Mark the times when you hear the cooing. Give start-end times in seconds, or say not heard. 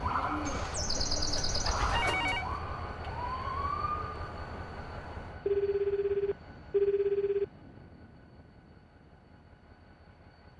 0.0-2.4.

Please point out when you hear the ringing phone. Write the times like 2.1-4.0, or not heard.
0.5-2.5, 5.5-7.5.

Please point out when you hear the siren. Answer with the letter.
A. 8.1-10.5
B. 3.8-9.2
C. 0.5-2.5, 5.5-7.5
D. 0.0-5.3
D.